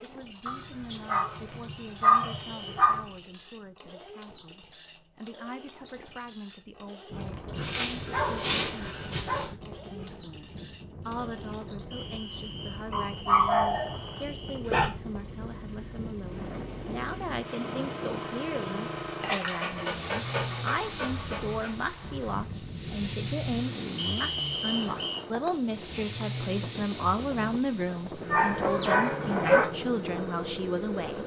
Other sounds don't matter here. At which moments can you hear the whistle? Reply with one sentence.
You can hear the whistle from 2.2 to 2.6 s, from 11.9 to 14.7 s and from 23.9 to 25.2 s.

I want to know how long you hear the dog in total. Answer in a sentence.
You can hear the dog for 10 seconds altogether.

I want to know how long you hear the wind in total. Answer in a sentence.
You can hear the wind for 24 seconds altogether.